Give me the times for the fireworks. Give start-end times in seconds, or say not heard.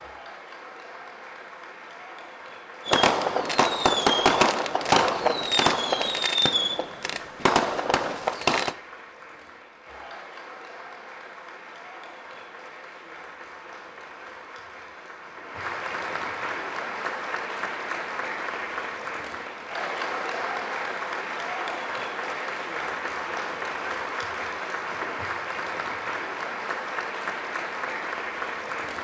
2.9-8.8.